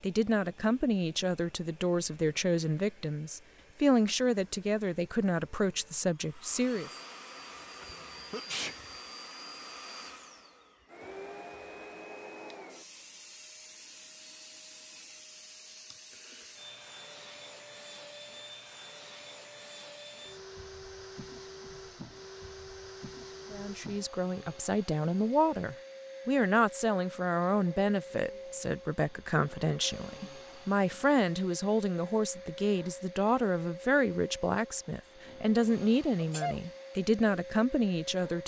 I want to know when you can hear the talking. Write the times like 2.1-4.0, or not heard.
0.0-6.9, 23.5-38.4.